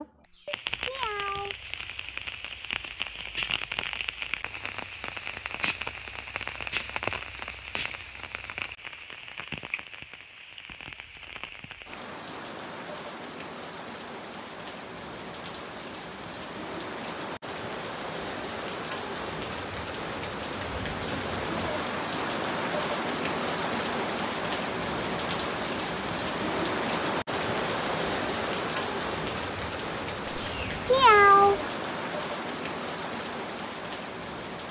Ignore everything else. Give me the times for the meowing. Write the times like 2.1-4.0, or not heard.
0.2-1.6, 30.2-31.6.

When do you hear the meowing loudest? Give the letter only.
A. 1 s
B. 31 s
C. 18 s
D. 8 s
B.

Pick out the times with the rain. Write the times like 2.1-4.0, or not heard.
0.0-34.6.